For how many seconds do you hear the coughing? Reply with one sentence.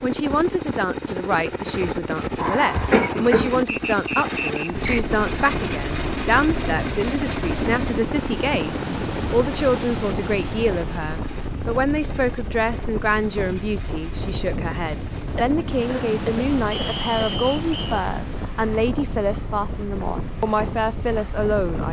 You can hear the coughing for 3 seconds altogether.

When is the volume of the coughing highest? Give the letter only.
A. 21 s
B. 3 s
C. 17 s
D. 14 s
B.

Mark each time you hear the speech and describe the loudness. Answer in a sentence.
The speech can be heard from 0.0 to 21.8 s, at a steady volume.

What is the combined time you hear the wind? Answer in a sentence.
The wind can be heard for 17 seconds in total.